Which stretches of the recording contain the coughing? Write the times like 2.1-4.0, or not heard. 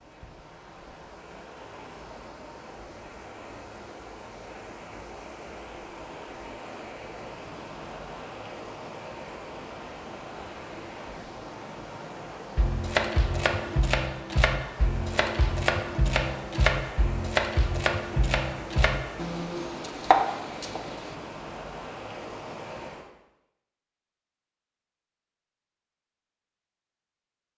not heard.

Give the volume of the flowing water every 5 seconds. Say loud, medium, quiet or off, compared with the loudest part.
medium, loud, loud, loud, loud, off.